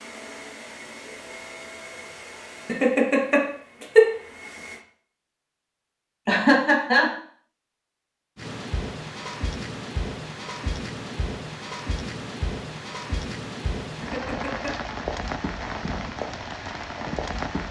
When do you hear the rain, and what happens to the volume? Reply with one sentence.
You can hear the rain from 8.3 to 17.6 s, at a steady volume.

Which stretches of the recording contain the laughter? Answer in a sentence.
The laughter can be heard from 2.6 to 4.0 s, from 6.2 to 7.1 s and from 14.0 to 14.7 s.